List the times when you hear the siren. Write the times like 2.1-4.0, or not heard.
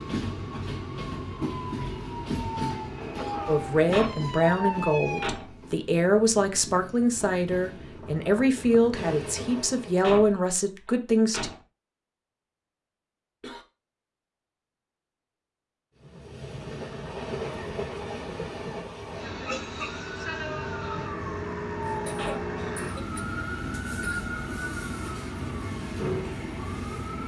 0.0-5.5, 19.8-27.2.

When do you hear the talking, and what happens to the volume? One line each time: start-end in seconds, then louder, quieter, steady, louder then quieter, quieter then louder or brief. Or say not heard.
3.5-11.5 steady.